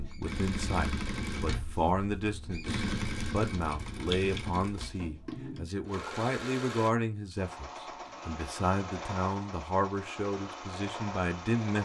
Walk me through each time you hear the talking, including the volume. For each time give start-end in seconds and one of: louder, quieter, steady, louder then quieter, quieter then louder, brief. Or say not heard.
0.0-11.8 steady.